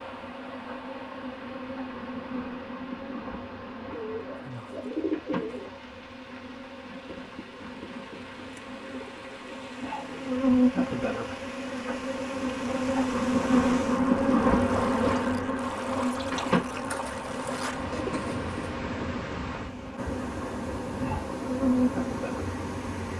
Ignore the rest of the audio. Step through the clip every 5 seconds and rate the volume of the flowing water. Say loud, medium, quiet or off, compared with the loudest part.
medium, quiet, medium, loud, loud.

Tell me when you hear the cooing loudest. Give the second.
5 s.